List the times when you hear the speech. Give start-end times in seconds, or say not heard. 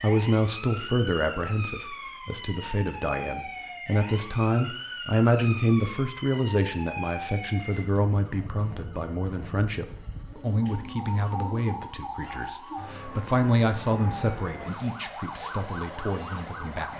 0.0-16.9.